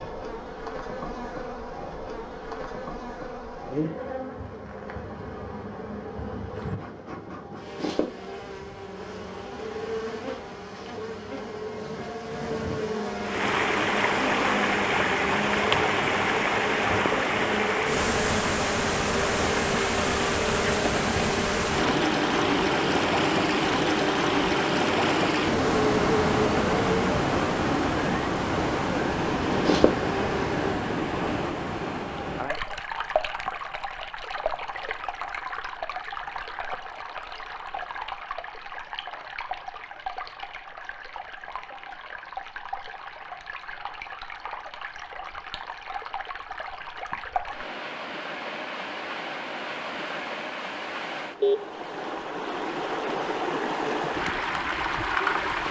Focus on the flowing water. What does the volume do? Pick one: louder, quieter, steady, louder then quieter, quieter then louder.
quieter then louder.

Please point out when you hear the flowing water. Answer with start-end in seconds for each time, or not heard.
13.2-55.6.